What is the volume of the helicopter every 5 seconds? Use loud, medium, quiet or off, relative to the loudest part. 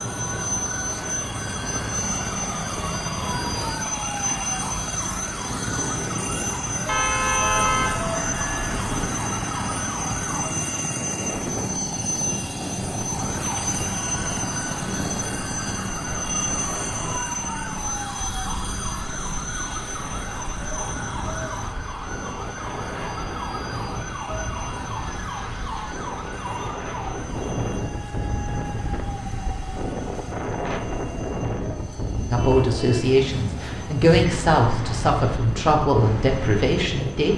loud, loud, loud, loud, medium, quiet, quiet, off.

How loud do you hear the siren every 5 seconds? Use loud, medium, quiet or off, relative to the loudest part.
loud, loud, loud, loud, loud, loud, off, off.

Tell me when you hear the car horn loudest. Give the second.
8 s.